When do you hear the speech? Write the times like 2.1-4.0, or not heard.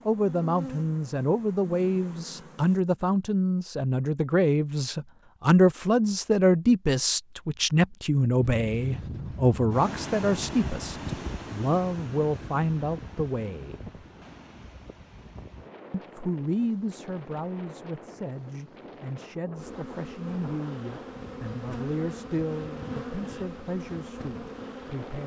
0.1-13.8, 15.9-25.2.